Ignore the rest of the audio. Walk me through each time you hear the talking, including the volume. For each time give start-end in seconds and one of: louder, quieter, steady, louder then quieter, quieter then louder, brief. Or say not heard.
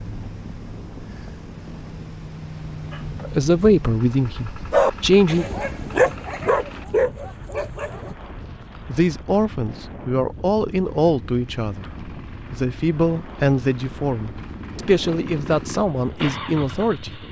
3.2-5.5 brief
8.8-17.2 steady.